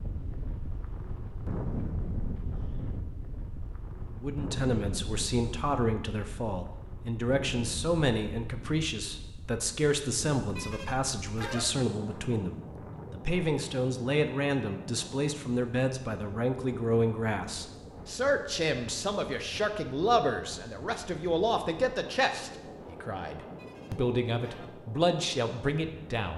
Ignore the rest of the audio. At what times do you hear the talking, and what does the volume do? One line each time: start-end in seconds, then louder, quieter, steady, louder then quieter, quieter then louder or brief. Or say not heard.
4.2-26.3 steady.